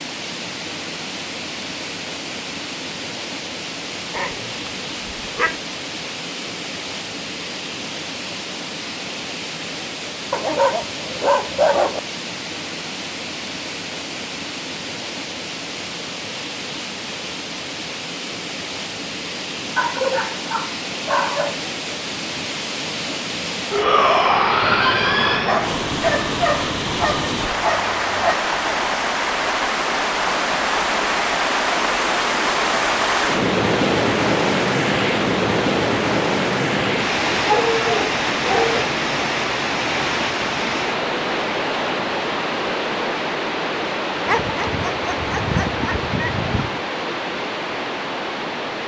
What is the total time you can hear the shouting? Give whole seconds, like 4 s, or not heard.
2 s.